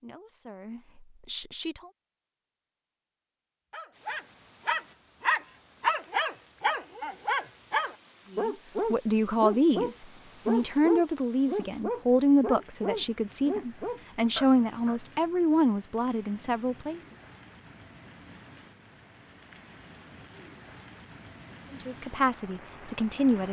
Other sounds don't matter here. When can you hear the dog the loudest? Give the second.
6 s.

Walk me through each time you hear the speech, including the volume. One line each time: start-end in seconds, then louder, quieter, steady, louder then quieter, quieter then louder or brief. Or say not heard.
0.0-1.8 brief
8.3-17.0 steady
21.7-23.4 brief.